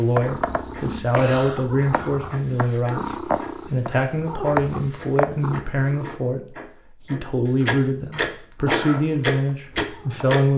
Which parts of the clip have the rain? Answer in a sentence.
The rain can't be heard in this clip.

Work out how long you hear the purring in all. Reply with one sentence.
You can hear the purring for 8 seconds altogether.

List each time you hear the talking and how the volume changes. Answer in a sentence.
The talking can be heard from 0.0 to 10.5 s, at a steady volume.